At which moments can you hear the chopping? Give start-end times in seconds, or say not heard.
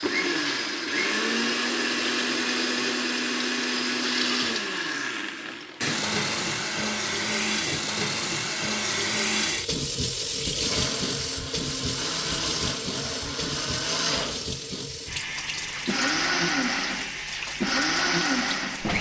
not heard.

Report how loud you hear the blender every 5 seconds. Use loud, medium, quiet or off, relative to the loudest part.
loud, medium, medium, loud.